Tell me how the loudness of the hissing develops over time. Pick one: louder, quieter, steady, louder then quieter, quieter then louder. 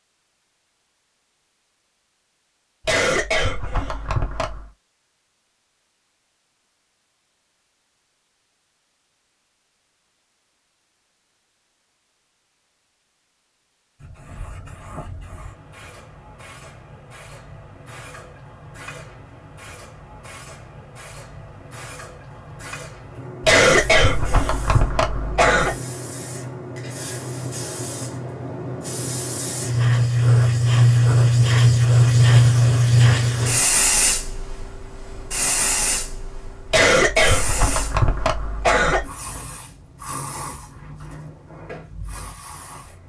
louder then quieter.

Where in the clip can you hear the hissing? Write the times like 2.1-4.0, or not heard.
13.9-43.0.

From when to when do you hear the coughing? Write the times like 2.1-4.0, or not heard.
2.9-4.7, 23.4-25.8, 36.7-39.0.